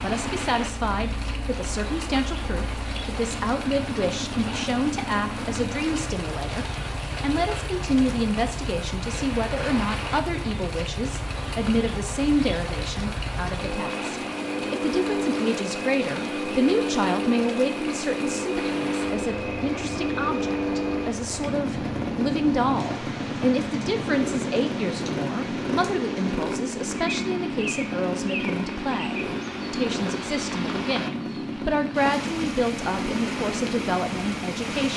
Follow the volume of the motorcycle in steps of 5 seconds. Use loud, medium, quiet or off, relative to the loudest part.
medium, medium, medium, loud, loud, loud, loud.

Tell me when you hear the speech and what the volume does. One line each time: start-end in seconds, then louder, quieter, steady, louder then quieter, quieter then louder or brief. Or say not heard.
0.0-34.9 steady.